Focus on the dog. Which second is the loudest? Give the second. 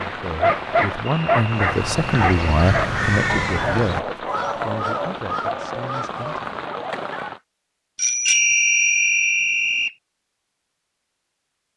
1 s.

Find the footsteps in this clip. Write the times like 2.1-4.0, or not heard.
not heard.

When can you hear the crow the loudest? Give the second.
3 s.